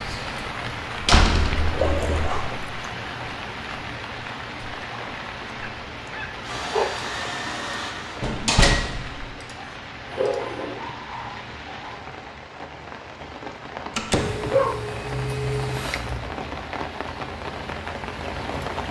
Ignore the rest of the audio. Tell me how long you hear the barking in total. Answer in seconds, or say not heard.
7 s.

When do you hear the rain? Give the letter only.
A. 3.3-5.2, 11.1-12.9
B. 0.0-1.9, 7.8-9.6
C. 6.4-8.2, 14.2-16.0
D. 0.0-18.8
D.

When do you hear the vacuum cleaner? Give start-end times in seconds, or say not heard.
6.4-8.2, 14.2-16.0.